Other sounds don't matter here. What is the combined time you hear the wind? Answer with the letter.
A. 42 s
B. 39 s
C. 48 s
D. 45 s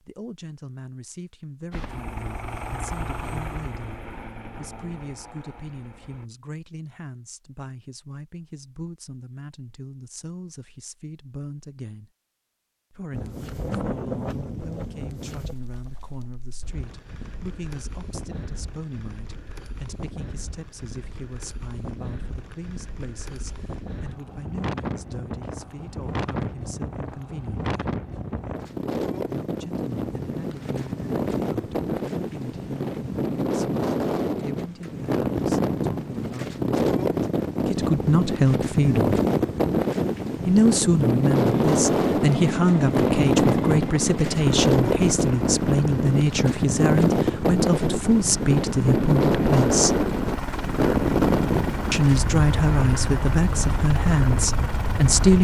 A.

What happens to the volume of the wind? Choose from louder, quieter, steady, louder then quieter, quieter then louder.
louder.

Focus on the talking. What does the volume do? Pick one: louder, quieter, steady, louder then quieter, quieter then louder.
louder.